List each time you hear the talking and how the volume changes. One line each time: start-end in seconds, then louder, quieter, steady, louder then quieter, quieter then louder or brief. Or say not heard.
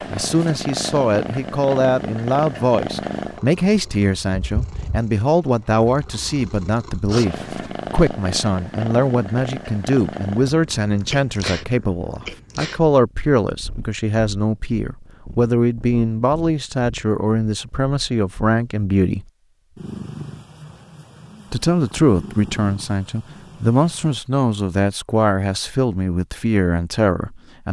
0.1-19.2 steady
21.5-27.6 steady.